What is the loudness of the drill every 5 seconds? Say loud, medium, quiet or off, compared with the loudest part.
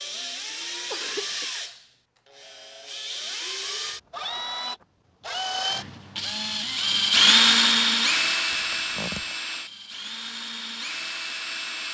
medium, loud, medium.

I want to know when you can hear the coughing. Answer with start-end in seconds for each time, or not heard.
0.8-1.6, 8.5-9.3.